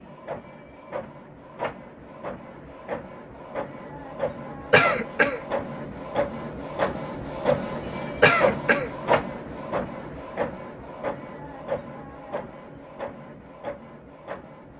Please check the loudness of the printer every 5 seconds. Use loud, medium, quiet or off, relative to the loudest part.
medium, loud, medium.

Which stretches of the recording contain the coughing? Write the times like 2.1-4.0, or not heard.
4.7-5.4, 8.2-8.9.